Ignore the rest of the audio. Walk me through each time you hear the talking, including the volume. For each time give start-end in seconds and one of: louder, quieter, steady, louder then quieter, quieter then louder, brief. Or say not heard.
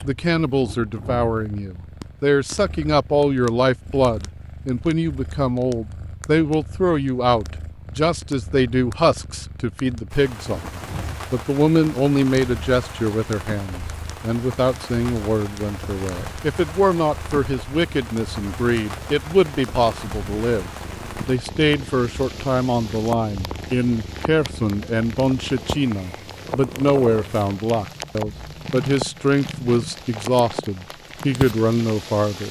0.0-32.4 steady.